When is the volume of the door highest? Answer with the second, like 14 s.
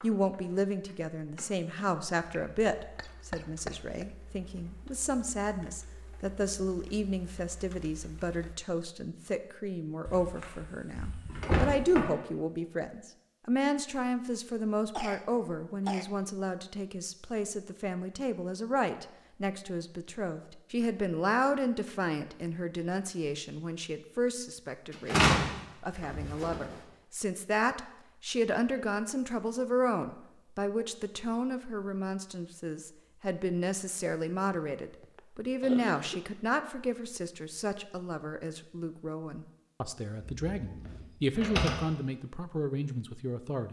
25 s.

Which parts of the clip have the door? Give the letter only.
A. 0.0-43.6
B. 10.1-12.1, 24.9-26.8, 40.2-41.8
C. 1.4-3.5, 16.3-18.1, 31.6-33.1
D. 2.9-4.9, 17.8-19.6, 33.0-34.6
B.